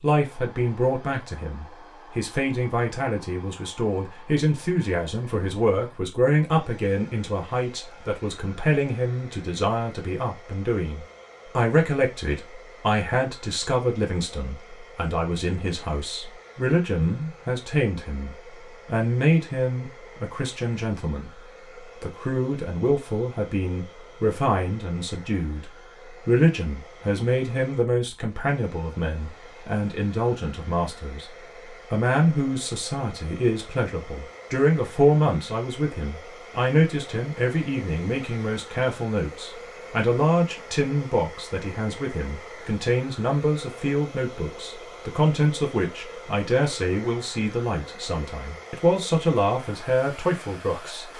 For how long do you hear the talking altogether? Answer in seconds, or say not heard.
50 s.